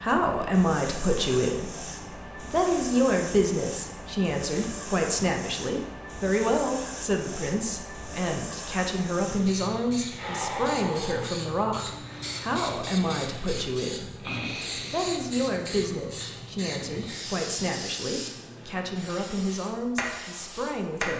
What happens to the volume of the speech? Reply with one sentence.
The volume of the speech goes down.